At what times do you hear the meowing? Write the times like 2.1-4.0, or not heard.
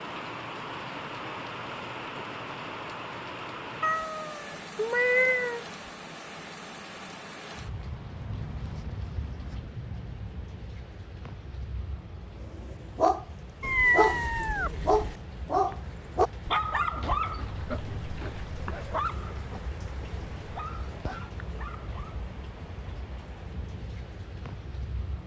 3.8-5.7, 13.6-15.2.